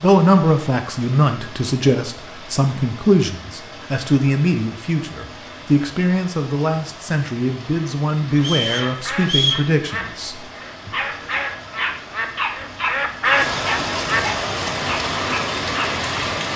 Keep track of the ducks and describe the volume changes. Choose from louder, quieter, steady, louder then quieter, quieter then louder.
louder.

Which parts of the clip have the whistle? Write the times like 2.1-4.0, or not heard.
8.3-9.7.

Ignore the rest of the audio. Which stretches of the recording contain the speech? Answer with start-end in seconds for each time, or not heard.
0.0-10.9.